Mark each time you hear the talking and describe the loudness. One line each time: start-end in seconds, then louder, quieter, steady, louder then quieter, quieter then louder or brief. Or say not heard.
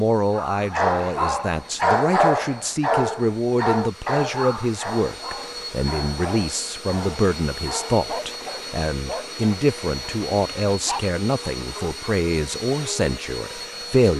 0.0-14.1 steady.